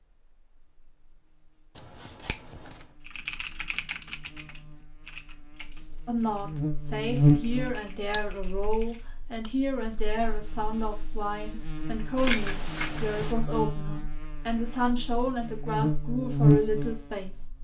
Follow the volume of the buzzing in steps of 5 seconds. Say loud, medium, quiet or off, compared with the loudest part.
quiet, loud, quiet, loud.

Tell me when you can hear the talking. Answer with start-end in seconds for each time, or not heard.
6.0-17.4.